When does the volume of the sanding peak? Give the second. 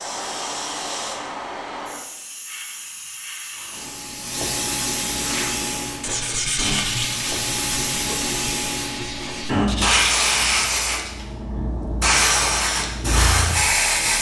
7 s.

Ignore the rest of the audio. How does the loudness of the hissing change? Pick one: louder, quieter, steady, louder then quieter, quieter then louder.
louder.